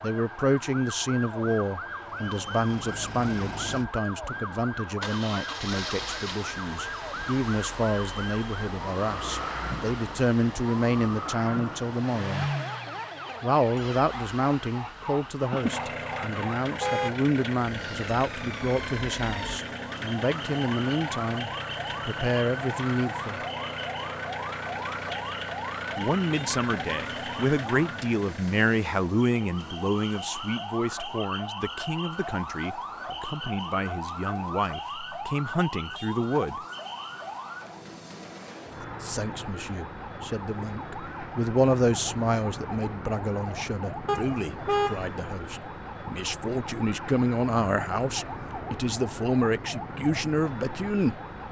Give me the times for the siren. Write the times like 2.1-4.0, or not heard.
0.0-51.4.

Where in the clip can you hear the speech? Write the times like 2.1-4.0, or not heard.
0.0-12.5, 13.4-23.4, 25.9-36.6, 39.0-51.2.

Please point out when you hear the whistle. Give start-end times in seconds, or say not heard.
not heard.